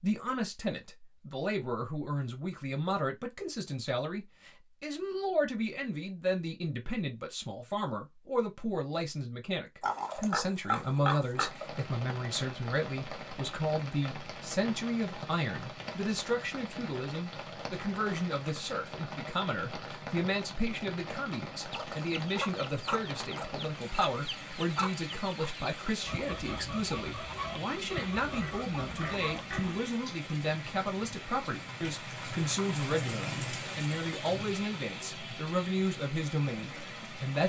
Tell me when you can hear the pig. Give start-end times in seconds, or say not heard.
9.8-11.8, 27.7-29.9.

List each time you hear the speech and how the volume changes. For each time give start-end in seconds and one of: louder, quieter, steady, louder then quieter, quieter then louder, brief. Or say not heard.
0.0-37.4 steady.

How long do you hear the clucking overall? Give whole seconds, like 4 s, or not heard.
8 s.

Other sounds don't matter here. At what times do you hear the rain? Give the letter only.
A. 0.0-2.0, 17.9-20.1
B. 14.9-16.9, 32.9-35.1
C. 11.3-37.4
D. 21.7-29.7
C.